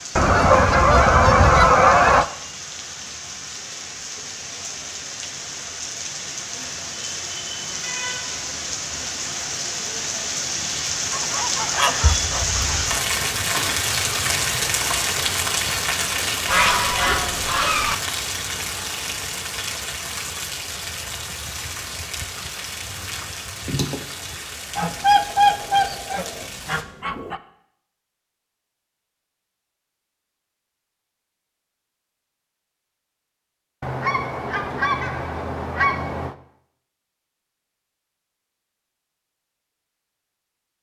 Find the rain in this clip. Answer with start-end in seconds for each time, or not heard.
0.0-26.9.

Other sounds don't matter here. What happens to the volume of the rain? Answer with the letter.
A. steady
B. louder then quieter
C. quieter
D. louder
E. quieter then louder
B.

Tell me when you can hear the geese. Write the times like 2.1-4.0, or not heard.
0.1-2.2, 11.1-13.0, 16.4-17.9, 24.8-27.4, 33.8-36.4.